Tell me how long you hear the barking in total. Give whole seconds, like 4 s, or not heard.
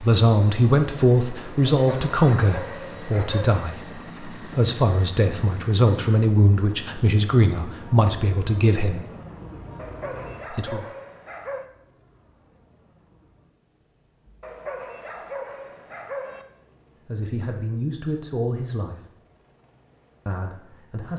6 s.